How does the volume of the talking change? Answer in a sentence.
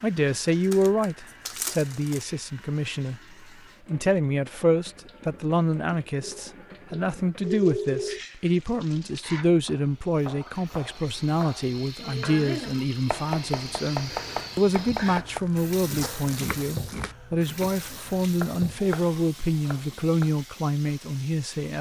The loudness of the talking stays about the same.